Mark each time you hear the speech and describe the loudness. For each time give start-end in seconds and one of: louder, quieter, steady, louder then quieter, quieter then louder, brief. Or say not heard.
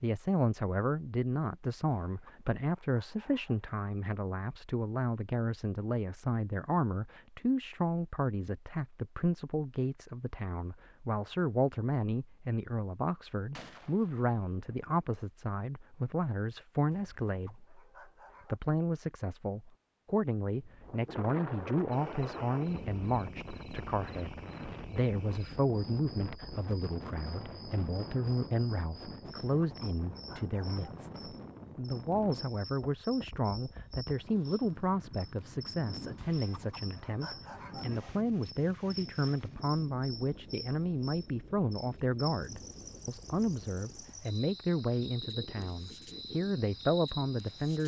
0.0-17.8 steady
18.4-47.8 steady.